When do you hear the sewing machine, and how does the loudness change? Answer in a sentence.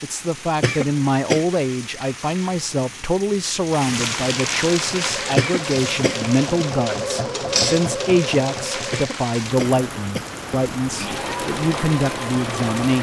The sewing machine can be heard from 4.7 to 9.2 s, getting louder then quieter; and briefly from 10.9 to 12.9 s.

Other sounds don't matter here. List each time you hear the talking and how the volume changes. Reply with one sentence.
The talking can be heard from 0.0 to 12.9 s, at a steady volume.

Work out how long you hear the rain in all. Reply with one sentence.
You can hear the rain for 13 seconds altogether.